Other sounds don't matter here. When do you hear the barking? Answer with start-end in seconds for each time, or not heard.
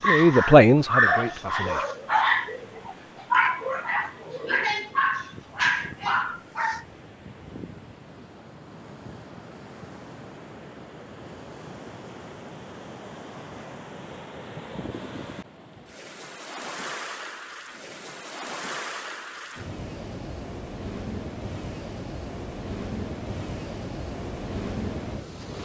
0.0-6.8.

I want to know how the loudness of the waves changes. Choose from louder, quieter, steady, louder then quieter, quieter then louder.
louder.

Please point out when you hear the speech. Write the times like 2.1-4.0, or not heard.
0.0-1.9.